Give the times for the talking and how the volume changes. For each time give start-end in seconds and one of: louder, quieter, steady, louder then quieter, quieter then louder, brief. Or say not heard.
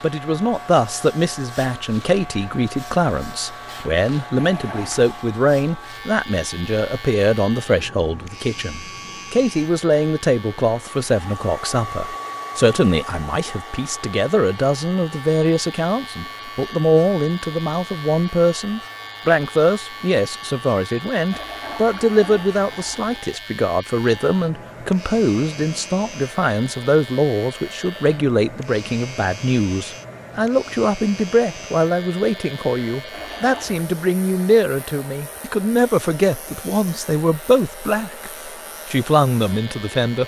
0.0-40.2 steady.